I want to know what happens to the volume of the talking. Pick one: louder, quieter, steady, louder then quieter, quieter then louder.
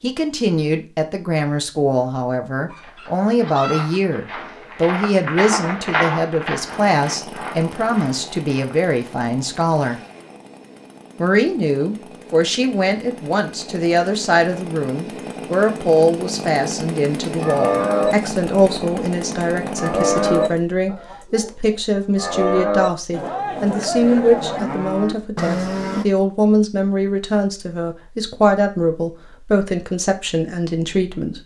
steady.